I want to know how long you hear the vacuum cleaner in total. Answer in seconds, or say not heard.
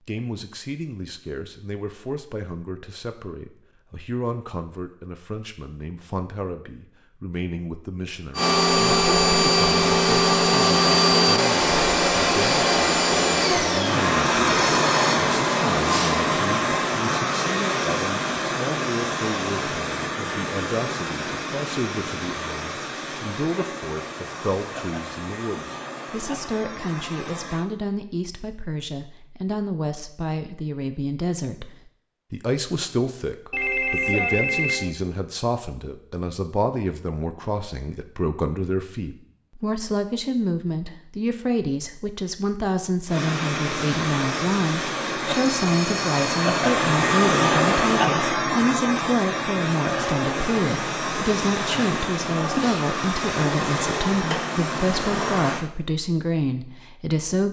32 s.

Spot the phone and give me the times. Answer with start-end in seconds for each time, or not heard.
14.4-15.2, 33.5-34.9, 45.3-46.5.